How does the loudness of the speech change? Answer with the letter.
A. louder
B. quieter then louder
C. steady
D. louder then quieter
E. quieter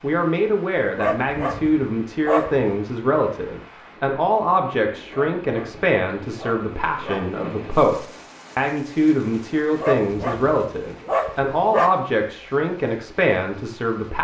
C.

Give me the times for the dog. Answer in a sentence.
You can hear the dog from 0.9 to 2.7 s, from 5.1 to 7.3 s and from 9.8 to 11.9 s.